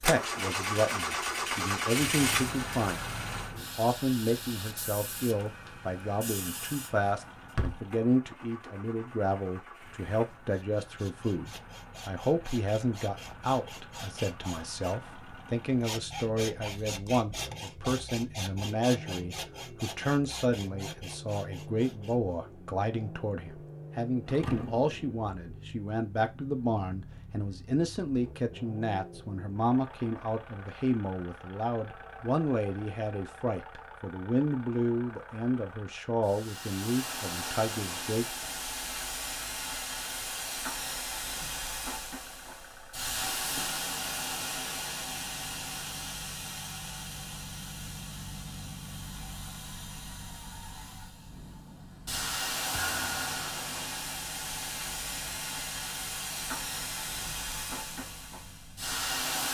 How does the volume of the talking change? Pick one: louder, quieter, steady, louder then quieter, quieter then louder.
steady.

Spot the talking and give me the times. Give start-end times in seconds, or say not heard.
0.0-38.5.